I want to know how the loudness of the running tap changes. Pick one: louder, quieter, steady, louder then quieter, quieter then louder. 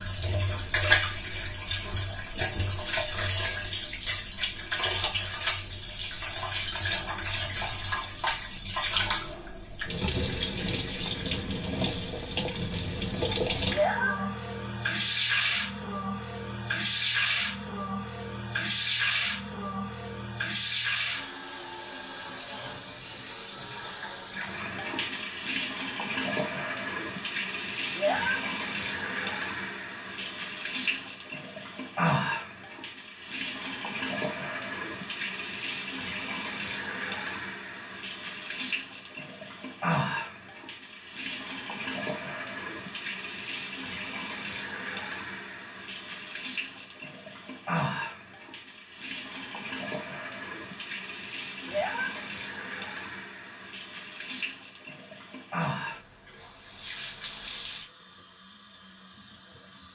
quieter.